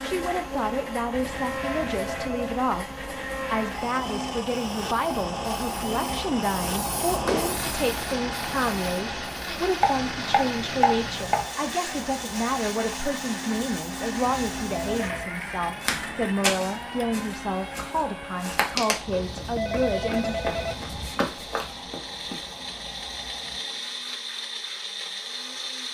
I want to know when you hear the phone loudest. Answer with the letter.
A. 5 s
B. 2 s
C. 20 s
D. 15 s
C.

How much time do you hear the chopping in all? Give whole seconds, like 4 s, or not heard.
2 s.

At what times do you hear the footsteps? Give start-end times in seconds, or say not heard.
15.8-22.4.